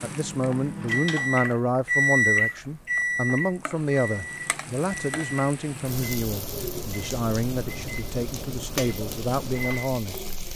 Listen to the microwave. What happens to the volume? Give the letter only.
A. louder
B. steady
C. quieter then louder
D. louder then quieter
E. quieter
E.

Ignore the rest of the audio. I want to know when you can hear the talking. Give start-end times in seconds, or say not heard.
0.0-10.3.